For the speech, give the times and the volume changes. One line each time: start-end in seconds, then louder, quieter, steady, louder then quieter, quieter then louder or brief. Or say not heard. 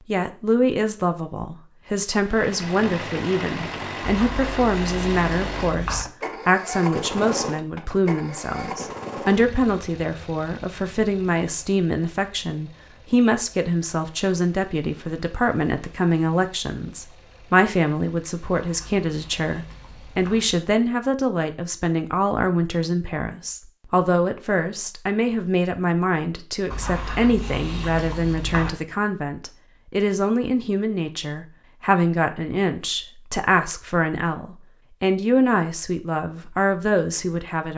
0.1-37.7 steady.